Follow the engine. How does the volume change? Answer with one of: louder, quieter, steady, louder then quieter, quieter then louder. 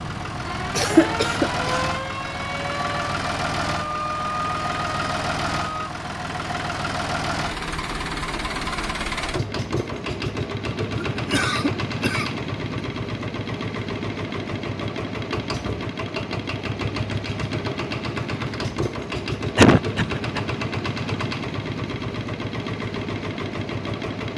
steady.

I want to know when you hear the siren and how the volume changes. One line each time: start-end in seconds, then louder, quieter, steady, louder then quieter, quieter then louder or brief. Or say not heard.
0.0-5.9 steady.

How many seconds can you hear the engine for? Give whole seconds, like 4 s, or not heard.
24 s.